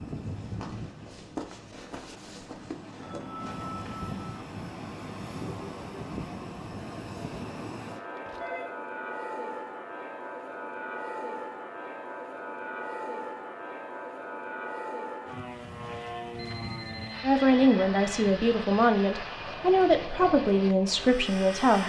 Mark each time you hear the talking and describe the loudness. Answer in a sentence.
The talking can be heard from 17.2 to 21.8 s, at a steady volume.